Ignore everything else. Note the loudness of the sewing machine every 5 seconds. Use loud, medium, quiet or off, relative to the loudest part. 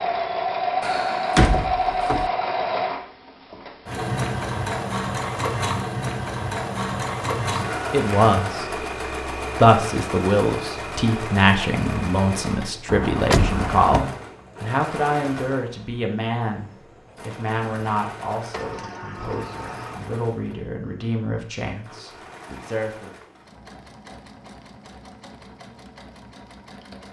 loud, loud, medium, quiet, quiet, quiet.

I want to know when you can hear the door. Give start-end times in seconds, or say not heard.
0.8-2.3, 12.8-14.1, 18.5-20.1.